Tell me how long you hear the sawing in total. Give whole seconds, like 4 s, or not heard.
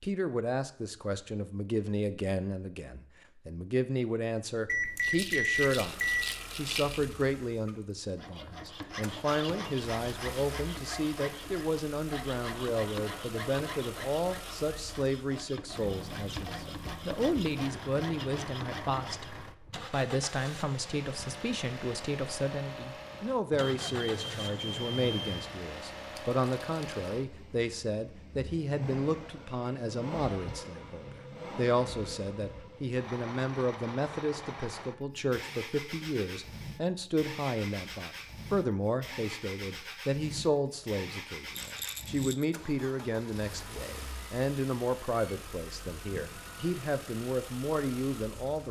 11 s.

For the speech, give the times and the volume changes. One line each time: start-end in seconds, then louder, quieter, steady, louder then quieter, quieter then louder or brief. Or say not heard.
0.0-48.6 steady.